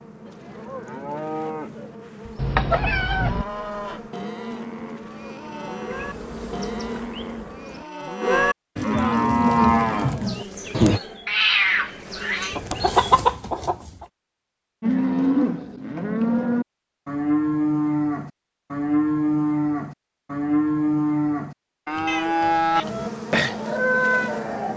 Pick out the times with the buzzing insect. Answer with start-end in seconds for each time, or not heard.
0.0-7.8, 10.2-13.2, 22.8-24.7.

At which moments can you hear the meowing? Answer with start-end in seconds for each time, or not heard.
2.4-3.5, 11.2-12.6, 22.1-22.9.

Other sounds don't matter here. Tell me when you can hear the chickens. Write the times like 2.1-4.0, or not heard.
12.5-14.1.